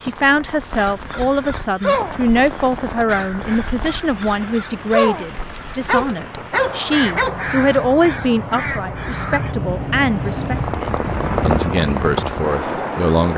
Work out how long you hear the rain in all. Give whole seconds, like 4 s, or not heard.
13 s.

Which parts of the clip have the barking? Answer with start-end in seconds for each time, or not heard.
5.8-7.3.